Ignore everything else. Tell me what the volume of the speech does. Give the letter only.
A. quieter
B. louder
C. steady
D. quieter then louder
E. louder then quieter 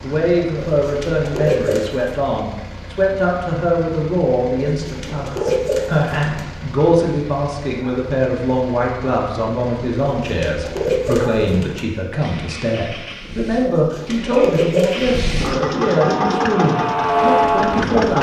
C.